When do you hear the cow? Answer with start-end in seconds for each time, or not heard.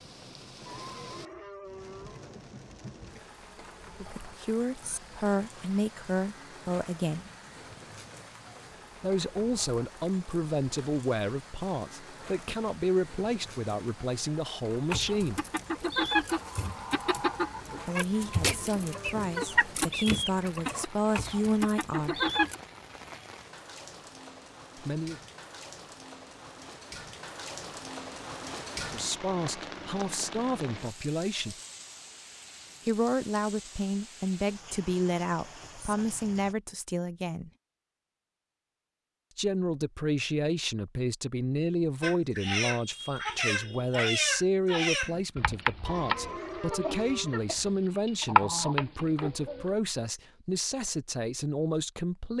0.7-2.4, 18.1-19.7, 45.9-47.5.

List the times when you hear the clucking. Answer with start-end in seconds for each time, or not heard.
14.9-22.6, 42.0-49.7.